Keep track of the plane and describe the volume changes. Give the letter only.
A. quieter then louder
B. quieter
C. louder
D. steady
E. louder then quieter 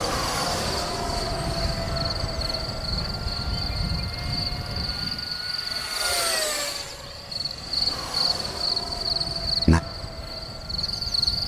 B.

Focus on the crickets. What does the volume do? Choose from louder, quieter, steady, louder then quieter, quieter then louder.
louder.